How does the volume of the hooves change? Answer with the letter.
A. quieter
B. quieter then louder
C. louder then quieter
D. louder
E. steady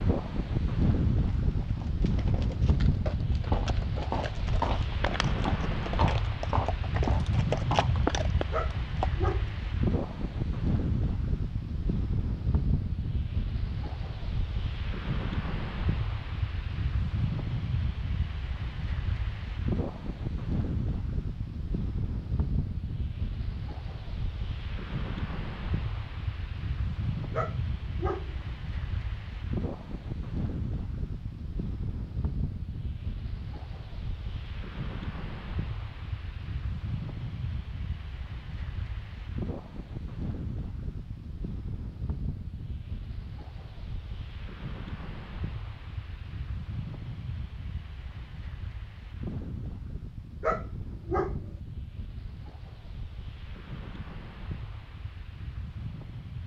D.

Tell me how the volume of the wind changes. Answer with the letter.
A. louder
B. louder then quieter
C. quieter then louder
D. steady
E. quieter
E.